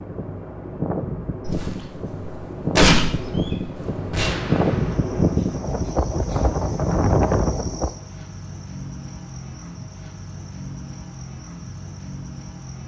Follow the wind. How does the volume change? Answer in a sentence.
The volume of the wind goes up.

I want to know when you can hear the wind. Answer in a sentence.
The wind can be heard from 0.0 to 8.0 s.